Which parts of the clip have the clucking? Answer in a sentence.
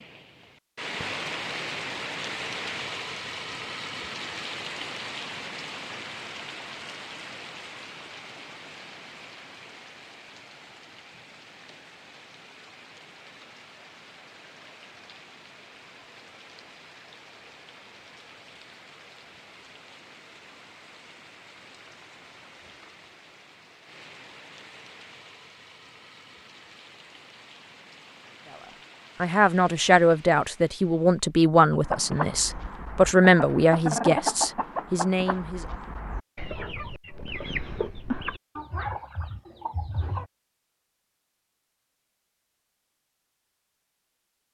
You can hear the clucking from 31.8 to 40.3 s.